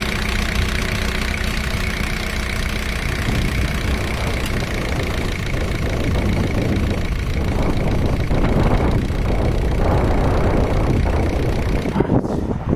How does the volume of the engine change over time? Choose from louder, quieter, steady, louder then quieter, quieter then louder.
quieter.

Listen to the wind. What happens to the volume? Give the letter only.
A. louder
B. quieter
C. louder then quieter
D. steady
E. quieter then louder
A.